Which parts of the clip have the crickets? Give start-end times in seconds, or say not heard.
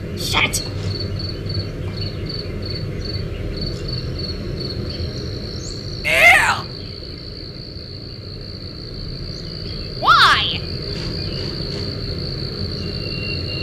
0.0-13.5.